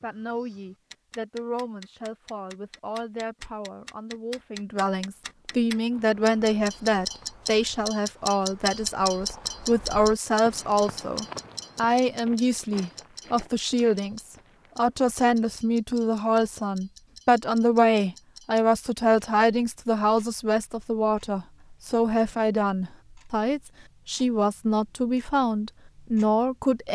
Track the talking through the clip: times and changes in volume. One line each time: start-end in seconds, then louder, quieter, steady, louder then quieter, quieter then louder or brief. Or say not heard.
0.0-26.9 louder.